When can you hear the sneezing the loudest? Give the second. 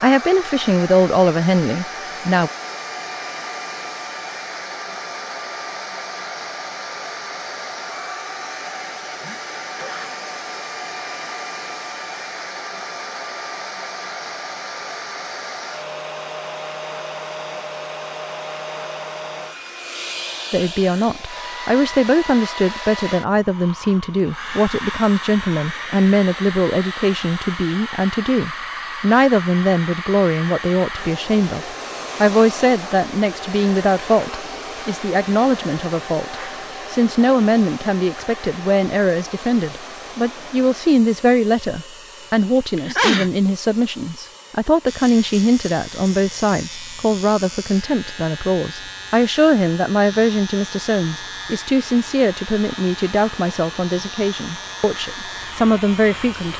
43 s.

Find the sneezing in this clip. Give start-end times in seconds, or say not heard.
9.2-10.2, 42.8-43.3.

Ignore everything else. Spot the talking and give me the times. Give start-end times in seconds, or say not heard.
0.0-2.5, 20.5-56.5.